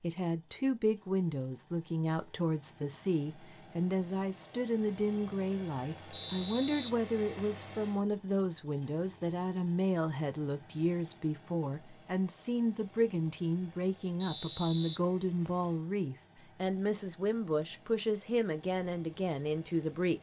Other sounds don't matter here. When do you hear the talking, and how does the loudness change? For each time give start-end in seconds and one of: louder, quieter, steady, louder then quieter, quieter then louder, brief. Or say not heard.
0.0-20.1 steady.